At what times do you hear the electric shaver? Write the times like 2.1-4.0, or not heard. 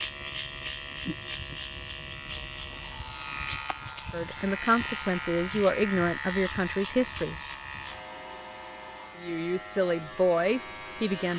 0.0-11.3.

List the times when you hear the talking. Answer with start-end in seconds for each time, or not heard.
4.1-7.3, 9.2-11.3.